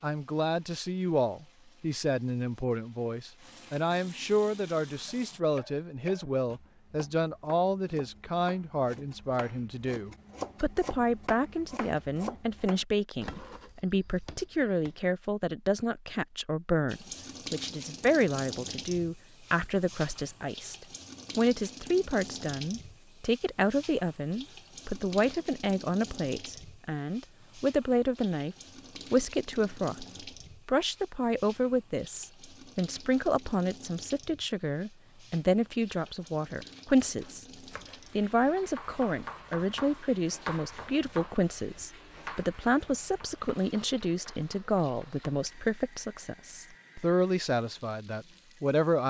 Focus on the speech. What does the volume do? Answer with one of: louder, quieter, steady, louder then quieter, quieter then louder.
steady.